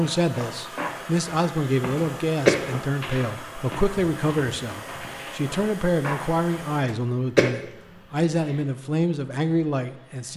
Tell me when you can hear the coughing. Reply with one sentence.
You can hear the coughing from 1.9 to 2.6 s and from 6.8 to 7.5 s.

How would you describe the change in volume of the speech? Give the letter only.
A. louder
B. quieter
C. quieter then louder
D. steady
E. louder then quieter
D.